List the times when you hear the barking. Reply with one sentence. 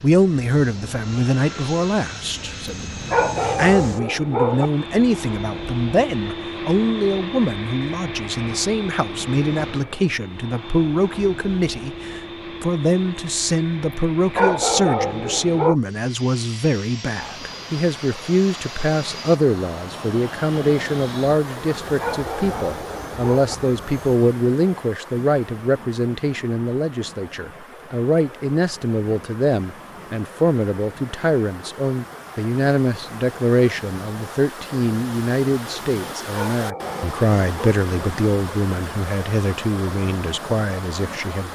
The barking can be heard from 3.1 to 4.7 s, from 14.3 to 15.8 s, from 22.0 to 23.6 s and from 36.3 to 37.8 s.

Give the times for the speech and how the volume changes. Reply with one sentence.
You can hear the speech from 0.0 to 41.4 s, at a steady volume.